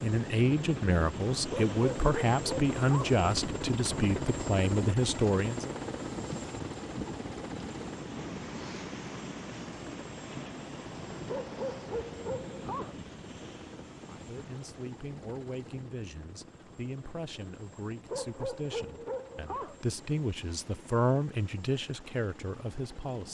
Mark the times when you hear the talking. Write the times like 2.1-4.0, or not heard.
0.0-5.8, 14.1-23.2.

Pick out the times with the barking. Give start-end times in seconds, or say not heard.
1.5-3.2, 11.2-13.0, 18.1-19.8.